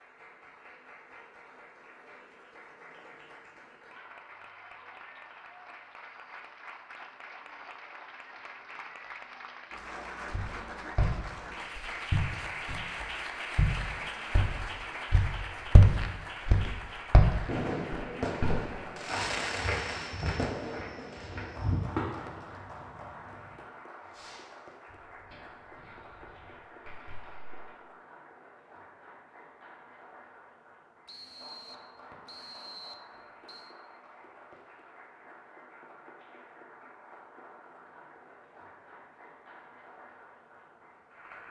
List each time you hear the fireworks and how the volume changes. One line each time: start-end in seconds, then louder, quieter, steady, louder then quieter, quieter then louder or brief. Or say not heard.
17.4-27.8 quieter.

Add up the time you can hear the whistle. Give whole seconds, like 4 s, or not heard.
3 s.